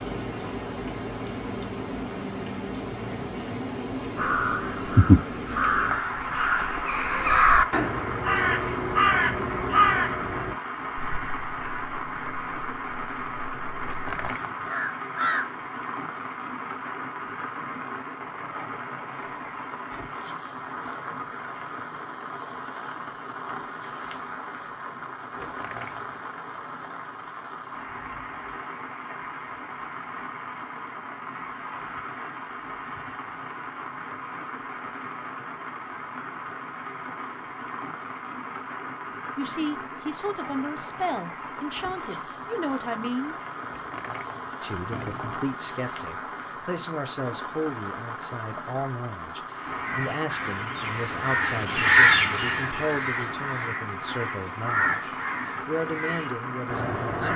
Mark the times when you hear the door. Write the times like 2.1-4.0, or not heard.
13.8-14.7, 25.4-26.1, 43.6-45.4.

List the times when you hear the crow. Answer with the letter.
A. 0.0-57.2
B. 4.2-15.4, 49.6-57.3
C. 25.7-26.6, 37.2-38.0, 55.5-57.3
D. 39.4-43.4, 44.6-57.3
B.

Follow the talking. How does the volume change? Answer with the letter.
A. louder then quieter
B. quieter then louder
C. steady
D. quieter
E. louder
C.